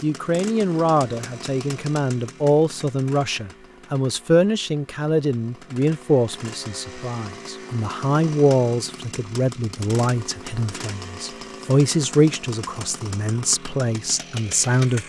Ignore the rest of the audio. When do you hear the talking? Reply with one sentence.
The talking can be heard from 0.0 to 15.0 s.